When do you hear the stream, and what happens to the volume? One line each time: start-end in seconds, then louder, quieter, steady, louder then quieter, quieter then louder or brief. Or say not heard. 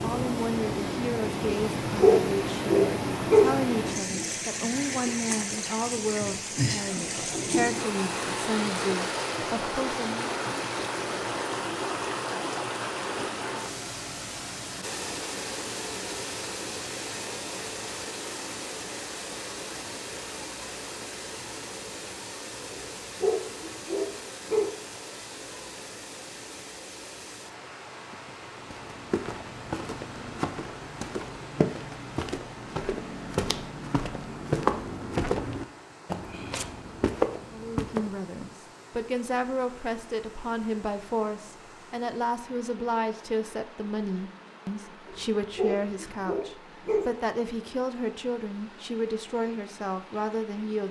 0.0-50.8 quieter.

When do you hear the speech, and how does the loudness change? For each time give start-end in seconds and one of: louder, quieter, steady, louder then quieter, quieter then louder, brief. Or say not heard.
0.0-10.3 steady
37.5-50.8 steady.